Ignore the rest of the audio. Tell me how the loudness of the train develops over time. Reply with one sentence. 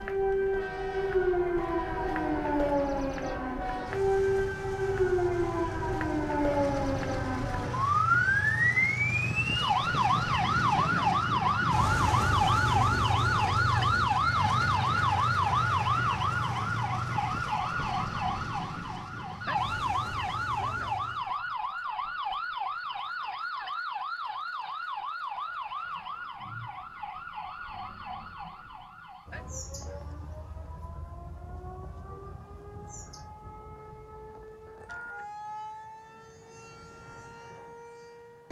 The volume of the train goes up, then down.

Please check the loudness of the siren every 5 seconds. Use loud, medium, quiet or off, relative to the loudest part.
loud, loud, loud, loud, medium, quiet, quiet, quiet.